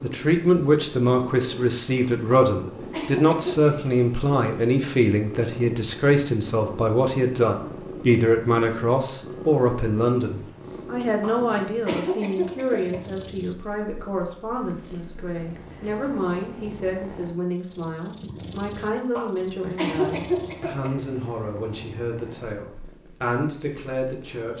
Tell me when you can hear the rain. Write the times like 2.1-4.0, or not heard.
not heard.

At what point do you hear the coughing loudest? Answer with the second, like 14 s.
20 s.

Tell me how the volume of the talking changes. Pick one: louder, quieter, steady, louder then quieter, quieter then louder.
quieter.